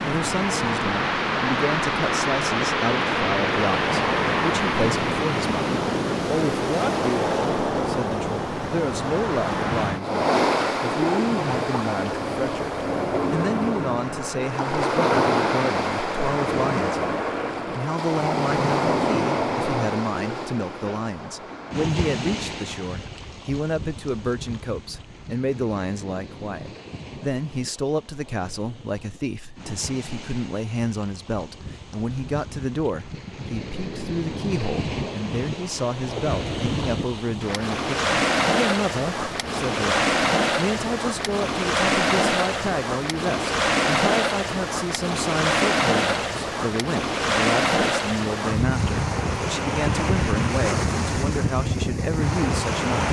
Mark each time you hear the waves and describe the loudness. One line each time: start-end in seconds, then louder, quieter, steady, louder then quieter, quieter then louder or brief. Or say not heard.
0.0-53.0 quieter then louder.